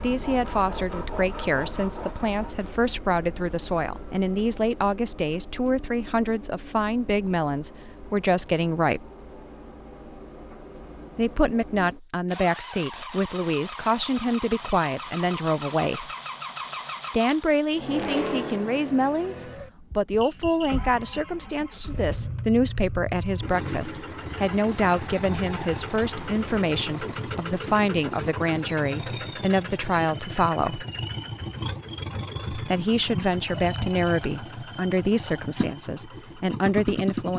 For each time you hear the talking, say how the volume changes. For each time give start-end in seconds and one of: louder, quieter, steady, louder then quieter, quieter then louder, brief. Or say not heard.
0.0-9.1 steady
11.2-16.1 steady
17.1-30.9 steady
32.5-37.3 quieter then louder.